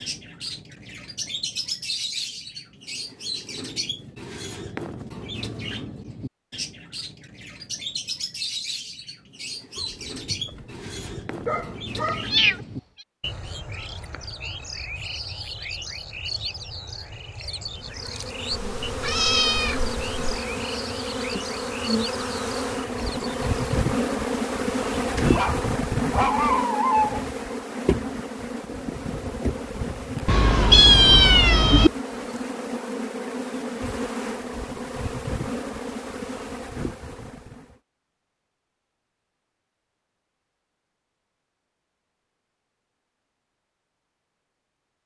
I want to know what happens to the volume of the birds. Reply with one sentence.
The volume of the birds stays about the same.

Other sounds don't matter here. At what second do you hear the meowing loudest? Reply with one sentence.
The volume of the meowing peaks at 31 seconds.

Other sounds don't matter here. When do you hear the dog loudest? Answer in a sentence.
The loudest moment of the dog is at 27 seconds.